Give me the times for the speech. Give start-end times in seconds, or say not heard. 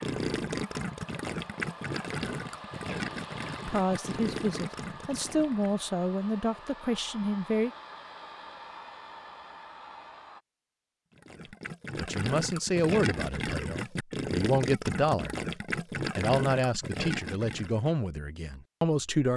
3.6-7.7, 11.9-15.3, 16.1-19.3.